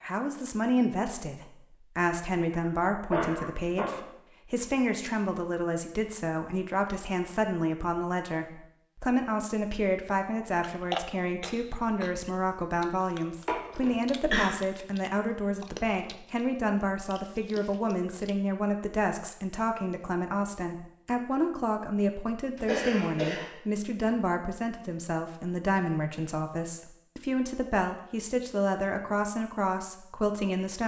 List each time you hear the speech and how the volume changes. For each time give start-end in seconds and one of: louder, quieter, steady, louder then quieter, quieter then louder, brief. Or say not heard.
0.0-30.8 steady.